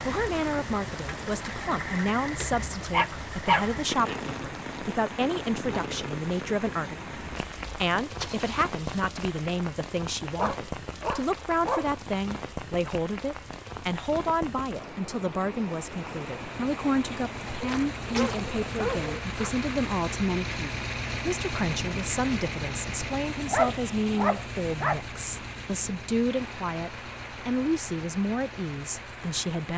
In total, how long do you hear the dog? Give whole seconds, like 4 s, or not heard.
6 s.